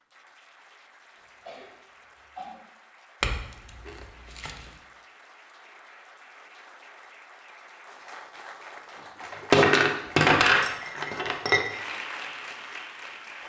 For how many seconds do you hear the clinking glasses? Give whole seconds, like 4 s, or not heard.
4 s.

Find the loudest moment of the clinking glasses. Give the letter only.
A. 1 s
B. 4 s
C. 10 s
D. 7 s
C.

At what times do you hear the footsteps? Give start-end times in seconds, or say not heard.
not heard.